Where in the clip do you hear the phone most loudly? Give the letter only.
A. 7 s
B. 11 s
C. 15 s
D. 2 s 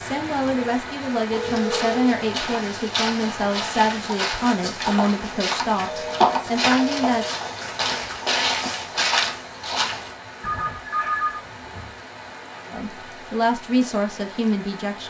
B.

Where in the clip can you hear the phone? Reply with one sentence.
You can hear the phone from 1.4 to 2.0 s, from 5.8 to 7.3 s and from 10.4 to 11.9 s.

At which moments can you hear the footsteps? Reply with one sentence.
You can hear the footsteps from 1.3 to 10.2 s.